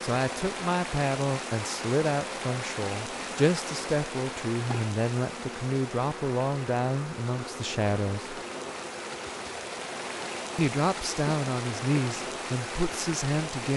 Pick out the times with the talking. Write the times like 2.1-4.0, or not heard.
0.0-8.4, 10.6-13.7.